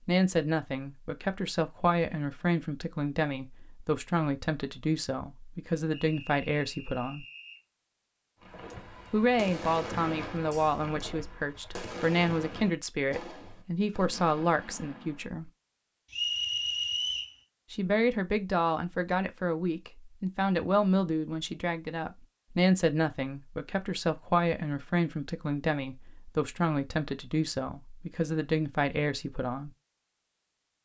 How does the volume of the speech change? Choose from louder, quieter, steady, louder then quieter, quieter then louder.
steady.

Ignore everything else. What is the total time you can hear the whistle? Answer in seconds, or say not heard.
3 s.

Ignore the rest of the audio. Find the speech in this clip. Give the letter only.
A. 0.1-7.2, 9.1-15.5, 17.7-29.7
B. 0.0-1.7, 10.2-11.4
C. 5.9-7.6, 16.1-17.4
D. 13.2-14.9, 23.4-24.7
A.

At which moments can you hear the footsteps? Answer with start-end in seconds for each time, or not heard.
not heard.